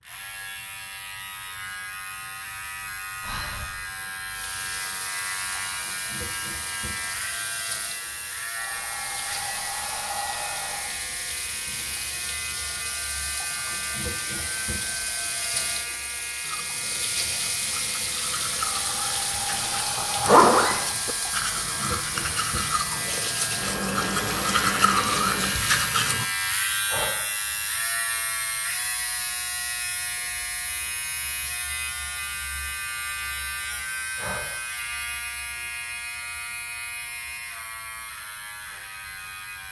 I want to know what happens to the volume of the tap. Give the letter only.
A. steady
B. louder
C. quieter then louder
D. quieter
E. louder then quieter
B.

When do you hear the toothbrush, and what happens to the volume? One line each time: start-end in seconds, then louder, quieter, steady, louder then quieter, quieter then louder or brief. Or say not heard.
16.4-26.2 louder.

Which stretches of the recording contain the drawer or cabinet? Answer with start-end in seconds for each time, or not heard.
not heard.